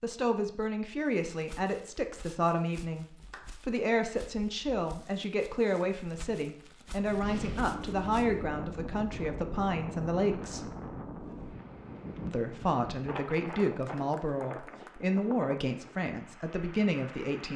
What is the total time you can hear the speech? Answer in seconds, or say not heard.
16 s.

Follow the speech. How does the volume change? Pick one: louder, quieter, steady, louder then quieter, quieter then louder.
steady.